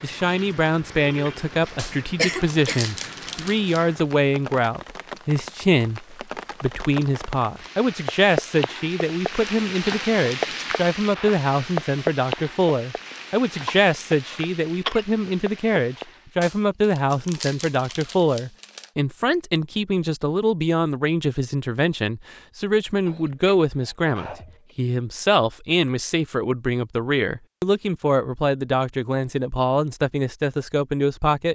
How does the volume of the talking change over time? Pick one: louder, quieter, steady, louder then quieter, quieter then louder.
steady.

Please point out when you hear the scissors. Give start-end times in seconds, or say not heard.
not heard.